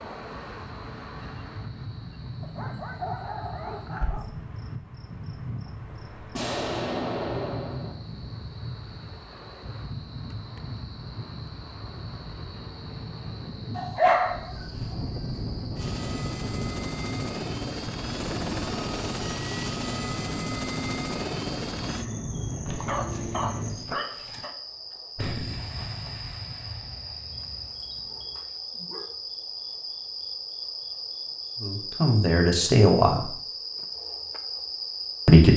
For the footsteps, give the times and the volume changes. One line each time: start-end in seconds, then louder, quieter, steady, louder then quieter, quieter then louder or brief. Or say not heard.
not heard.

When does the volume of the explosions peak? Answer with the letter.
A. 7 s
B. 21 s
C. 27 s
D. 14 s
A.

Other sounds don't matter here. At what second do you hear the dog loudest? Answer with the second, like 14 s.
14 s.